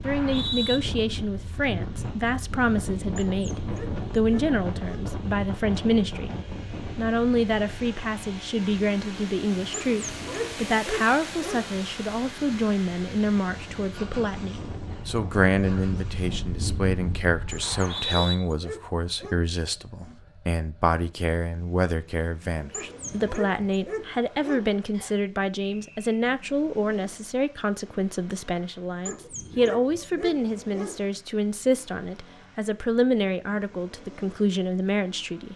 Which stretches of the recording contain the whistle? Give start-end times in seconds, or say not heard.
0.0-0.8, 17.6-18.4, 24.9-26.1.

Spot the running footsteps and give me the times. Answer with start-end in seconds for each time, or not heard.
not heard.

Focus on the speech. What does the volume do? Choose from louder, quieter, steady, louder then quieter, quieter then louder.
steady.